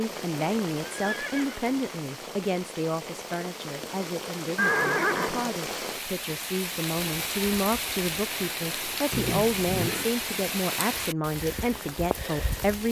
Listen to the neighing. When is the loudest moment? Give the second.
5 s.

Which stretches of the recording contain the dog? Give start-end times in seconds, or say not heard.
not heard.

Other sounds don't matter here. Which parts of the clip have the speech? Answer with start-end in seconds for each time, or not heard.
0.0-12.8.